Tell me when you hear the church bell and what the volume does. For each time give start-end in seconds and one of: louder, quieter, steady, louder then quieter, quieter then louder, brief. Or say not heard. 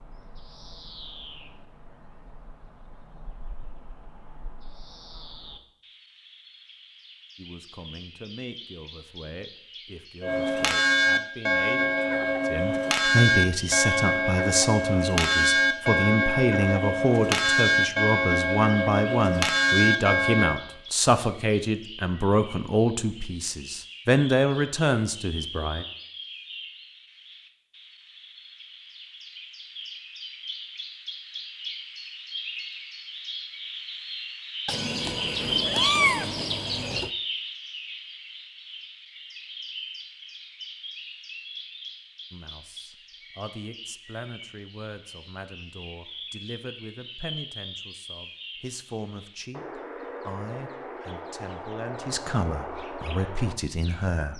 10.2-20.6 steady.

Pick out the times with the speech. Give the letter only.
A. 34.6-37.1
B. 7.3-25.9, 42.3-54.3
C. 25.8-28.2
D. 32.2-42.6
B.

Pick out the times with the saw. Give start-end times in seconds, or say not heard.
not heard.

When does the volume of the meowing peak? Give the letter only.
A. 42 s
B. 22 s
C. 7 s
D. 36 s
D.